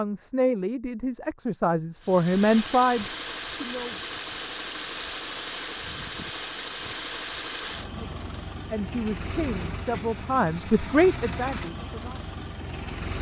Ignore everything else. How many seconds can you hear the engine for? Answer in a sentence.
The engine can be heard for 11 seconds in total.